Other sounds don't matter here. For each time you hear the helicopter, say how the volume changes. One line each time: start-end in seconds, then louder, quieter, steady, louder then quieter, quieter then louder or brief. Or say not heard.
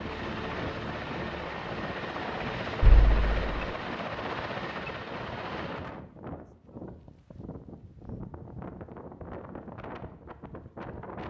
0.0-5.9 steady.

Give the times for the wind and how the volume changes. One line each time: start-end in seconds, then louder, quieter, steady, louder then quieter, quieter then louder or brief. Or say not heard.
0.0-11.2 steady.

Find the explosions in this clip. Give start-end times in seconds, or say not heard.
2.8-3.6.